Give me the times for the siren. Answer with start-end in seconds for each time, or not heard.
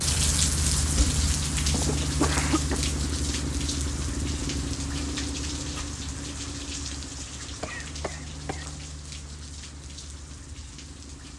not heard.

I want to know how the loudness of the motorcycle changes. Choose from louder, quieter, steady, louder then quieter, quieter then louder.
quieter.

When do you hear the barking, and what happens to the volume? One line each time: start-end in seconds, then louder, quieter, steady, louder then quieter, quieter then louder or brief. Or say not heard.
not heard.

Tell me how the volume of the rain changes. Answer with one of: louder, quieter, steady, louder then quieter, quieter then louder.
quieter.